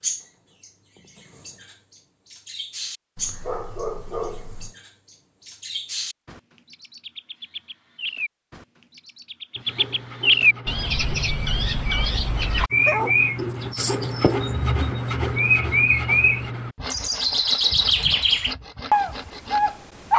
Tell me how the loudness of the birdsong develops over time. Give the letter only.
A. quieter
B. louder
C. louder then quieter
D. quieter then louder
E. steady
B.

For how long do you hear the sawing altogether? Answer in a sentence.
You can hear the sawing for 10 seconds altogether.